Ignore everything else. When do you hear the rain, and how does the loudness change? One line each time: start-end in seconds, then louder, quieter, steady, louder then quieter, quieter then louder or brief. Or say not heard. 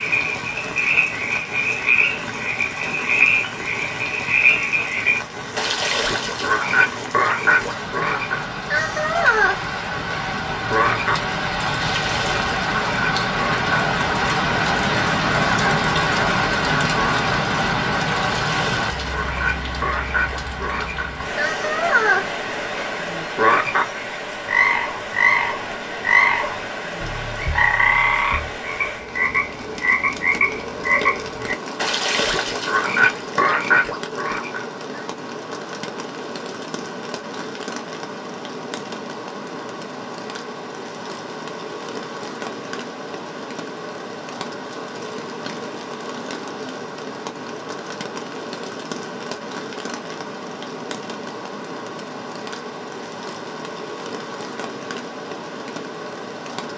0.0-56.7 louder then quieter.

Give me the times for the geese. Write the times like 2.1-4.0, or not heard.
not heard.